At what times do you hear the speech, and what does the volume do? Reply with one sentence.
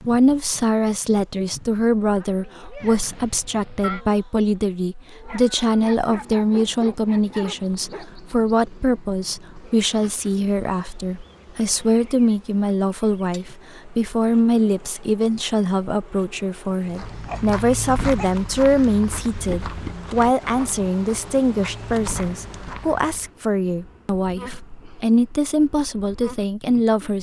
You can hear the speech from 0.1 to 27.1 s, at a steady volume.